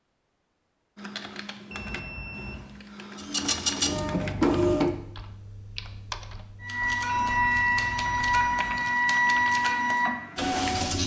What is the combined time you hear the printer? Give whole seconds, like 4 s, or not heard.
6 s.